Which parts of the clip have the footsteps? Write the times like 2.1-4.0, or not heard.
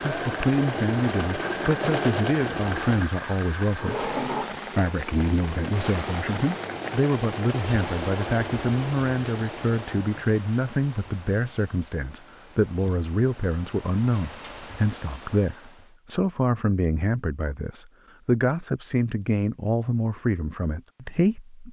not heard.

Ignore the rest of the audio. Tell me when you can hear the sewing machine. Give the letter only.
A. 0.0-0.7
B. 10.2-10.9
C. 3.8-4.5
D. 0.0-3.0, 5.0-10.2
D.